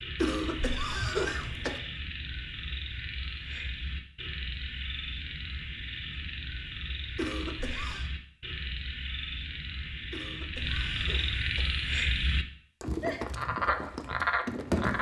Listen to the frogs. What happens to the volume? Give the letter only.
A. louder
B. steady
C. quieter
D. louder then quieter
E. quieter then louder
A.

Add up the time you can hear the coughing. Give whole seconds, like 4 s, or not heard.
4 s.